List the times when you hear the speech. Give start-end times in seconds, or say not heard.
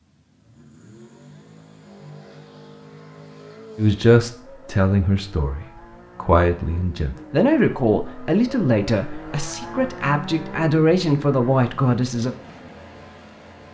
3.8-12.3.